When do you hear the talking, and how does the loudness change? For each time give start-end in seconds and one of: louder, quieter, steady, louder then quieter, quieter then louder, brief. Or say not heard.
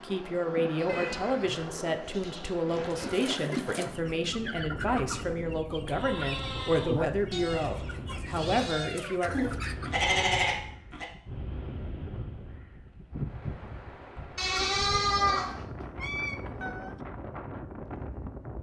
0.0-9.3 steady.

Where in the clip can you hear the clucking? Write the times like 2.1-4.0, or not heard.
3.0-10.0.